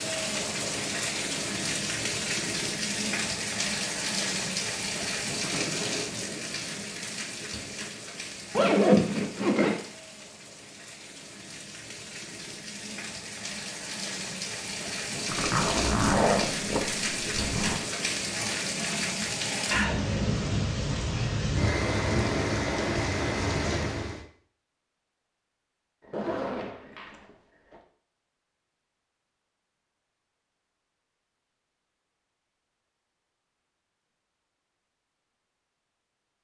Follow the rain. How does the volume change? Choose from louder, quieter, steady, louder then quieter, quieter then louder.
quieter then louder.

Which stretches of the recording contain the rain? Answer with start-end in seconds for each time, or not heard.
0.0-24.2.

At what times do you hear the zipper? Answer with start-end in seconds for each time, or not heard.
8.5-9.8, 15.3-17.8, 26.0-27.8.